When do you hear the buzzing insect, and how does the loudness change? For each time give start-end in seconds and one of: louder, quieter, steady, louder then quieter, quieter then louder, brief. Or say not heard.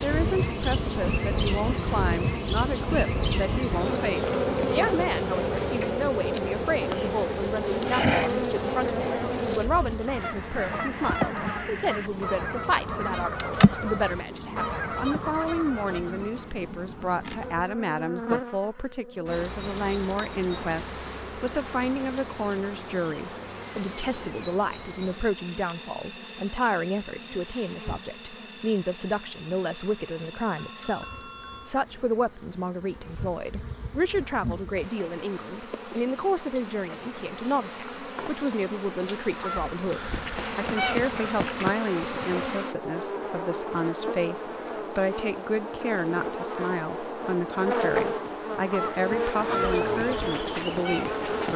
0.0-51.5 quieter then louder.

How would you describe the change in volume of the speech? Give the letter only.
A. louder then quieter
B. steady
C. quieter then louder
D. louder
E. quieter
B.